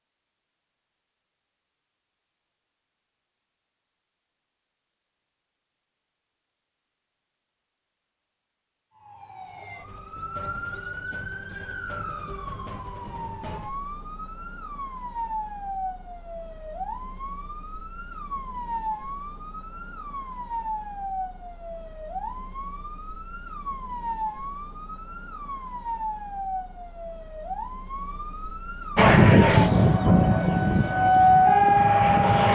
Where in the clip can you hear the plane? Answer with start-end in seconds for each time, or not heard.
28.9-32.4.